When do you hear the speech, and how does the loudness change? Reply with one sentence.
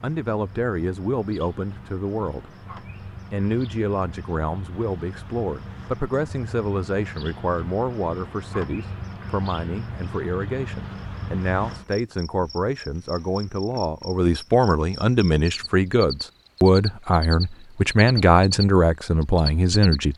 The speech can be heard briefly from 0.0 to 2.5 s; and from 3.3 to 20.1 s, getting louder.